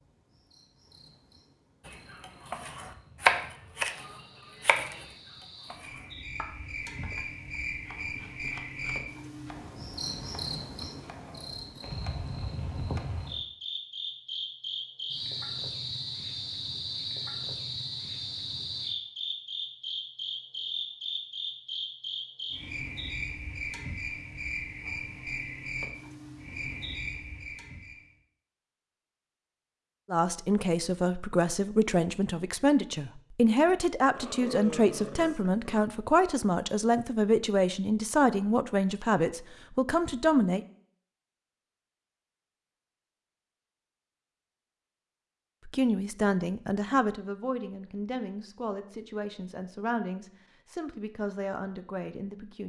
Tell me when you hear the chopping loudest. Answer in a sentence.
The loudest moment of the chopping is at 3 seconds.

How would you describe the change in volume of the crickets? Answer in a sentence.
The loudness of the crickets goes up.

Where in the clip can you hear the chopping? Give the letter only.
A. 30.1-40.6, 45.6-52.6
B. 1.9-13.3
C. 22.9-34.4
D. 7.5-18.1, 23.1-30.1
B.